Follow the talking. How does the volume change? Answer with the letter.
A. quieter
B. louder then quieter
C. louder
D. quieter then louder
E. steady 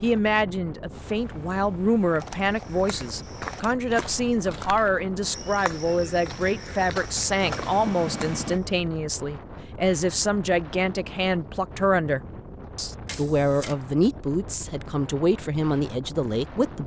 E.